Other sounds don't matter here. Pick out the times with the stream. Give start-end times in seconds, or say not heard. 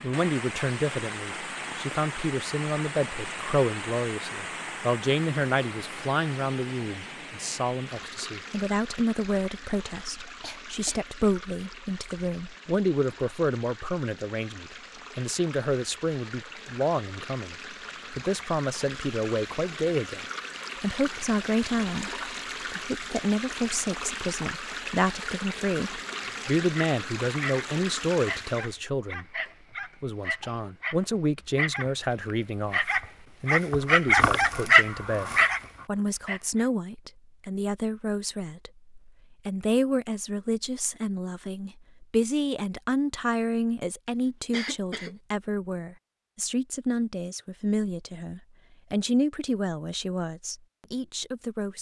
0.0-28.8.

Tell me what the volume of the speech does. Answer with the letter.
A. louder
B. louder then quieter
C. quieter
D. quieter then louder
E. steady
E.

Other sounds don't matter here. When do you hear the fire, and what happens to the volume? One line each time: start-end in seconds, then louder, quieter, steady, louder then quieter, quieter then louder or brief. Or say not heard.
not heard.